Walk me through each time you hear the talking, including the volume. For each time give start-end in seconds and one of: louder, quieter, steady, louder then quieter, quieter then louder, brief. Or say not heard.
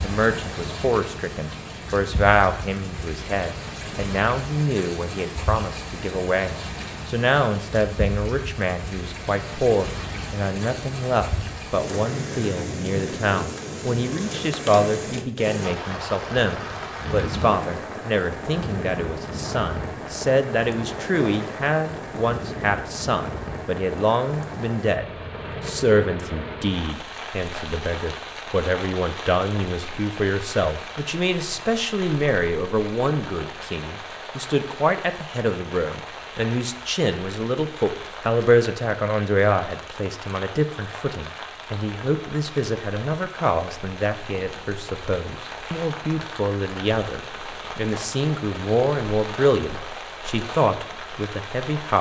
0.0-51.9 steady.